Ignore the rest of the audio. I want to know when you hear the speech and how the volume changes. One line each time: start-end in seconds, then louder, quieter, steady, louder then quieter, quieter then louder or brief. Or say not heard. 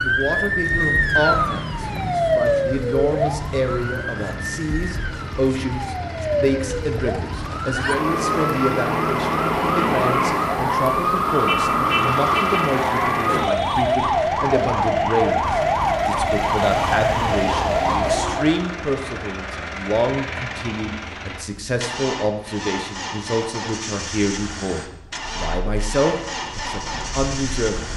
0.0-27.9 steady.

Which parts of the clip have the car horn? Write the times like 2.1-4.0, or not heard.
11.4-12.8.